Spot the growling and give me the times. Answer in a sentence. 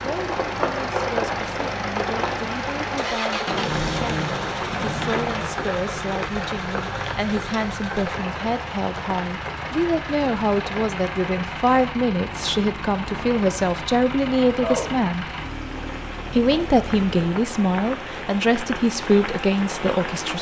You can hear the growling from 3.5 to 5.5 s.